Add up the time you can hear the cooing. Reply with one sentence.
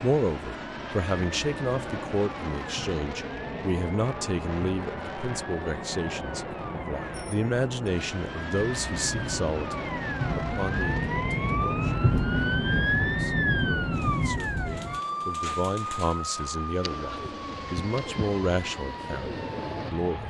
The cooing can be heard for 6 seconds in total.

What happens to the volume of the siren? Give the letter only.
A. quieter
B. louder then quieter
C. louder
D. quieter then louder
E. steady
B.